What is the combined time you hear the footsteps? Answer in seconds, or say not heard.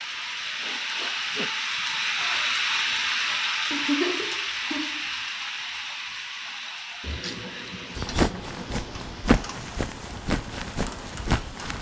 4 s.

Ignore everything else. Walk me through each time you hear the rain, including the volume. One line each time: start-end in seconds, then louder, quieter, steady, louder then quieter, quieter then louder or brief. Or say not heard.
0.0-11.7 quieter.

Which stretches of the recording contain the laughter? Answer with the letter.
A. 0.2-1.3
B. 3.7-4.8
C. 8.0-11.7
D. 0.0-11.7
B.